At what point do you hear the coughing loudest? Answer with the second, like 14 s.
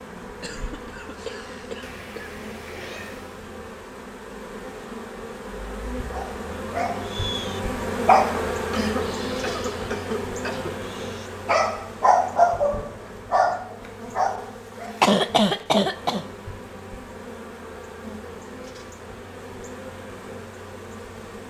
15 s.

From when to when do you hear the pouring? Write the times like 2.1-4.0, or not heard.
not heard.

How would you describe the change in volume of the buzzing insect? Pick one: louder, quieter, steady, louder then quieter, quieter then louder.
louder then quieter.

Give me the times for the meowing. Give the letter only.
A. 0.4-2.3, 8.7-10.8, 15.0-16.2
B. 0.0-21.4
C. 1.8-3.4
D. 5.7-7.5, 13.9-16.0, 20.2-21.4
C.